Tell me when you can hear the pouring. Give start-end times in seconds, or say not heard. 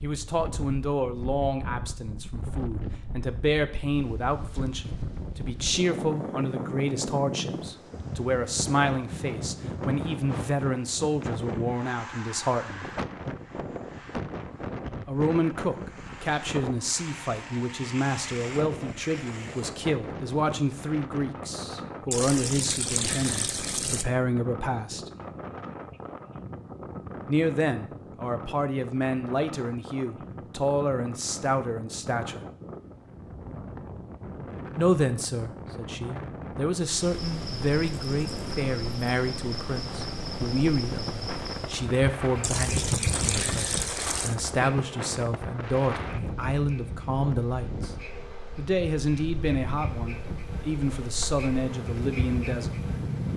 22.1-24.1, 42.4-44.4.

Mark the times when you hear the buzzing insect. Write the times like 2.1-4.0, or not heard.
36.8-53.3.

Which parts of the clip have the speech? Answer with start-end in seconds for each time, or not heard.
0.0-12.9, 15.1-25.1, 27.2-32.4, 34.8-47.9, 48.5-52.8.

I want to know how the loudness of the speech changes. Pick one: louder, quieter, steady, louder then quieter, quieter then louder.
steady.